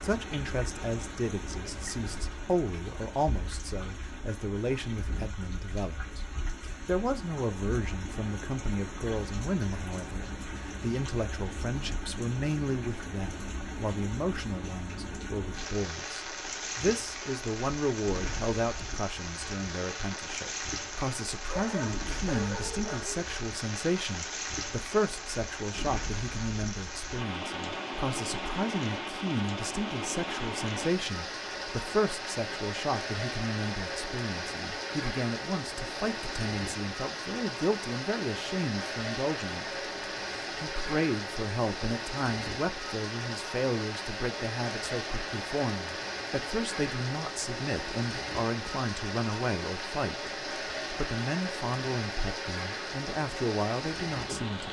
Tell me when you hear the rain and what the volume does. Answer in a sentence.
The rain can be heard from 0.0 to 54.6 s, getting louder.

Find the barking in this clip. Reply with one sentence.
The barking can be heard from 21.4 to 23.2 s.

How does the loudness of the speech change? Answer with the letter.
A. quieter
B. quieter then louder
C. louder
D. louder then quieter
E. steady
E.